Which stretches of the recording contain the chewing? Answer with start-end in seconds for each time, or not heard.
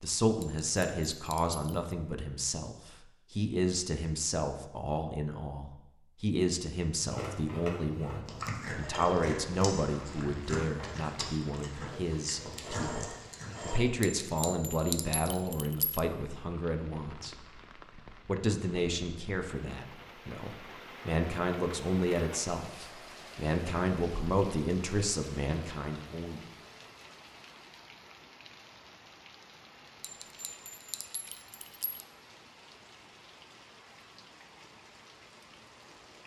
7.0-13.8.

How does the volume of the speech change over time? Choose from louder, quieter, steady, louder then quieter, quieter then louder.
steady.